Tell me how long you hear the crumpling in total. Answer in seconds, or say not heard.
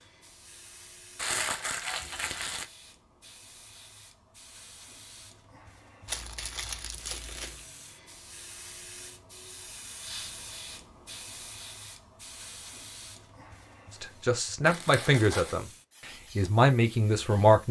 4 s.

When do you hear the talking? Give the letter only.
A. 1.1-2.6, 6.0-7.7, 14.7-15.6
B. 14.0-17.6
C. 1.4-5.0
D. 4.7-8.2
B.